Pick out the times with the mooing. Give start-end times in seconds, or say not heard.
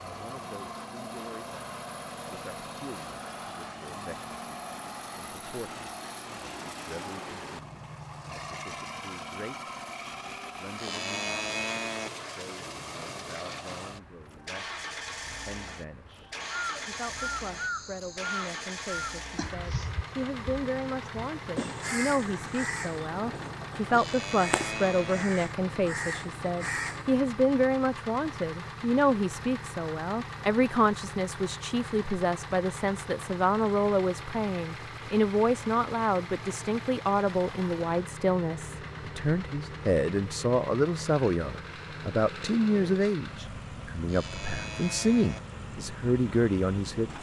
10.8-12.1, 23.9-25.2, 44.0-45.4.